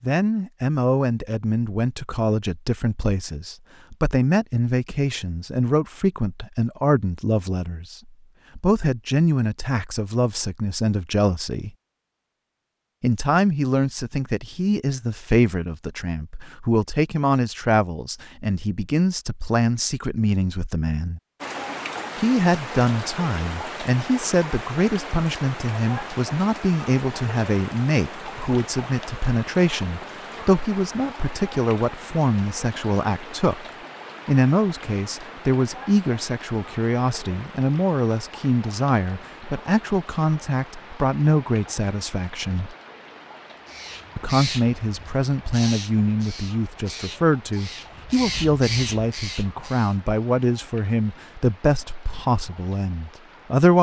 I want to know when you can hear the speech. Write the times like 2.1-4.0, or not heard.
0.0-11.7, 13.0-21.2, 22.1-33.6, 34.2-42.8, 44.1-53.7.